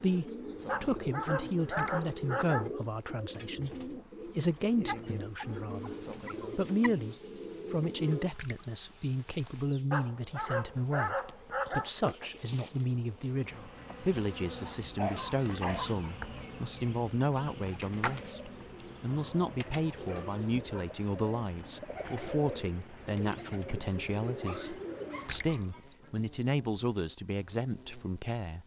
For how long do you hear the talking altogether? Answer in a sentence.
You can hear the talking for 28 seconds altogether.